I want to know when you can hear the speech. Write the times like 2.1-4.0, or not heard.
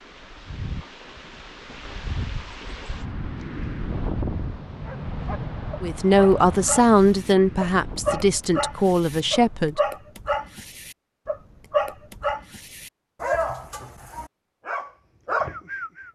5.8-9.8.